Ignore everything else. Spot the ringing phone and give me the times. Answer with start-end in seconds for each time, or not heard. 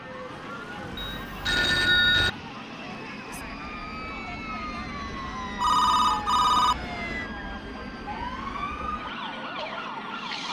0.9-2.3, 5.6-6.8.